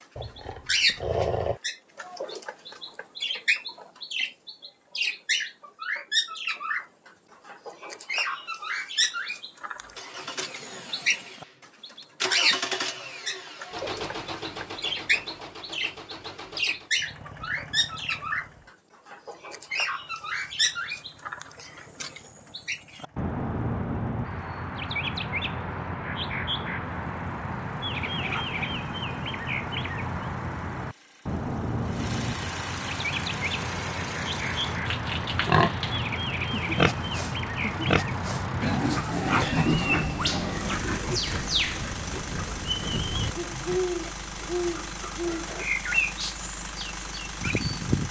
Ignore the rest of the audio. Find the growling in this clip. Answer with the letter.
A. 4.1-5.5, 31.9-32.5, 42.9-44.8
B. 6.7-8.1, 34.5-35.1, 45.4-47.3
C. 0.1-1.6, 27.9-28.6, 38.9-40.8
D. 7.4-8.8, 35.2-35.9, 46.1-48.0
C.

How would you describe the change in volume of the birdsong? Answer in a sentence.
The loudness of the birdsong stays about the same.